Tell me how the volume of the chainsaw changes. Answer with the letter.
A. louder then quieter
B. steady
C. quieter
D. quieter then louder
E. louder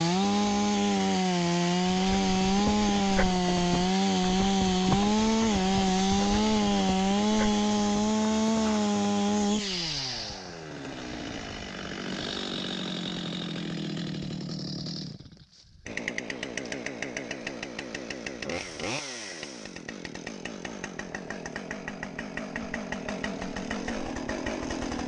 C.